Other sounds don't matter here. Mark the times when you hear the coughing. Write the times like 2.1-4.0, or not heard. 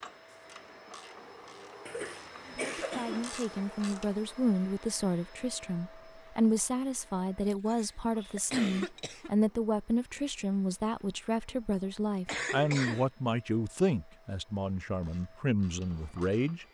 1.9-3.3, 7.5-9.3, 12.2-13.1.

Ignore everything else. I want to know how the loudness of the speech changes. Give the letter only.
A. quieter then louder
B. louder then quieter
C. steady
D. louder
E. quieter
C.